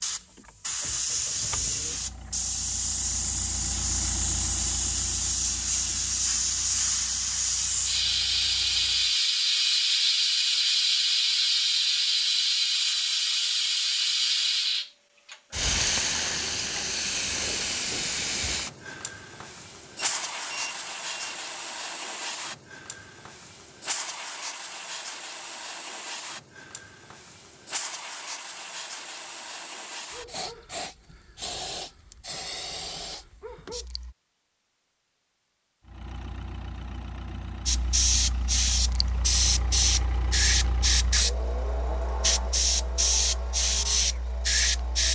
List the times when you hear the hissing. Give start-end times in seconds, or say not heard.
0.0-34.1, 37.6-45.1.